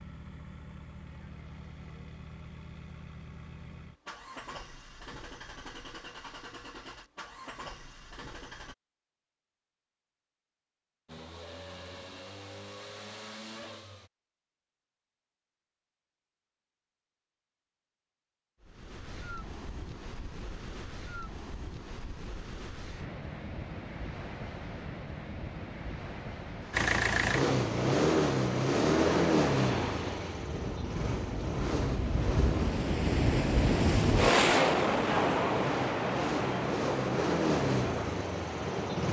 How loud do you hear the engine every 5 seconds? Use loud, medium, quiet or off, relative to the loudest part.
quiet, quiet, quiet, off, off, loud, medium, medium.